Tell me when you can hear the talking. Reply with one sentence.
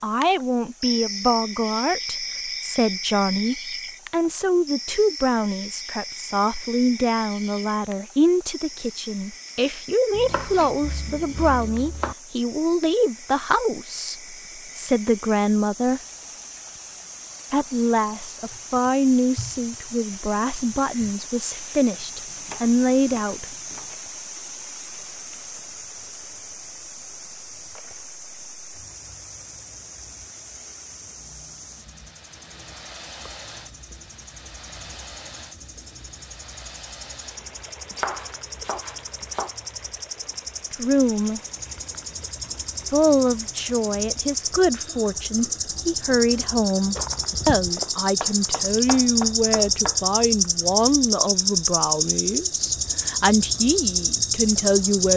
The talking can be heard from 0.0 to 16.0 s, from 17.5 to 23.5 s, from 40.7 to 41.4 s and from 42.9 to 55.1 s.